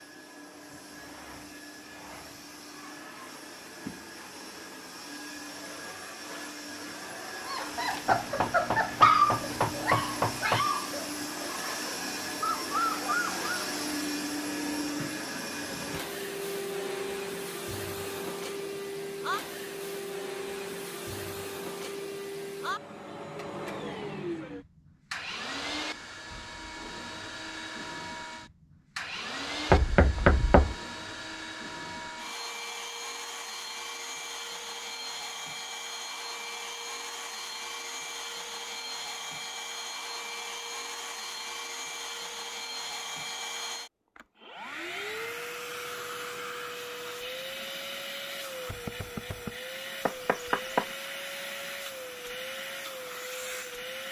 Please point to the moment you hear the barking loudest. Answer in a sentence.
The loudest moment of the barking is at 9 seconds.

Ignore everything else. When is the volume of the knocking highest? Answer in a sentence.
The volume of the knocking peaks at 30 seconds.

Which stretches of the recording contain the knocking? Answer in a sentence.
You can hear the knocking from 8.1 to 10.7 s, from 29.7 to 30.8 s and from 50.0 to 50.9 s.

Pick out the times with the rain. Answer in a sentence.
You can't hear the rain here.